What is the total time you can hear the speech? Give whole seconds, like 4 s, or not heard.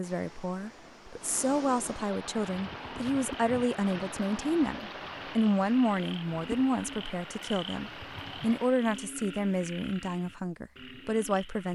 12 s.